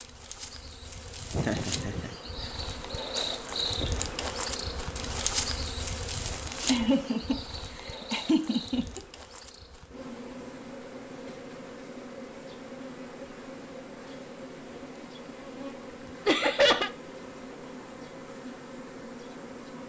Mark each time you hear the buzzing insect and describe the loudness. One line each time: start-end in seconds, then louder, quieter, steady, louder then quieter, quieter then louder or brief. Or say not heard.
0.0-19.8 quieter.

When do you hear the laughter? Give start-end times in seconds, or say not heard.
1.3-2.5, 6.7-9.0, 16.2-16.9.